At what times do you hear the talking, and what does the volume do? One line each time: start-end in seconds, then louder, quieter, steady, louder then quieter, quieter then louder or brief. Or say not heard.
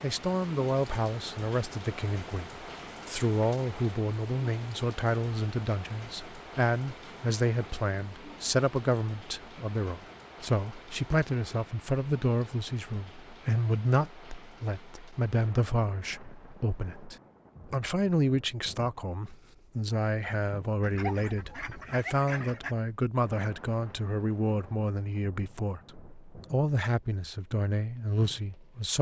0.0-28.9 steady.